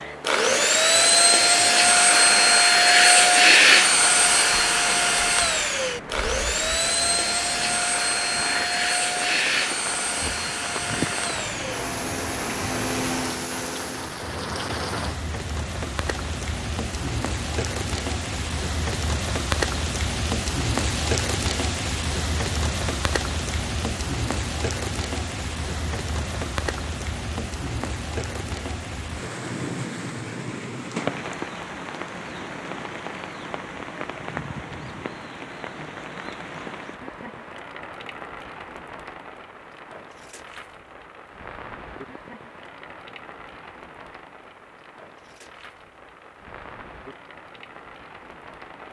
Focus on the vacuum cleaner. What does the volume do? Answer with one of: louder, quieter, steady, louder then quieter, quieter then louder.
quieter.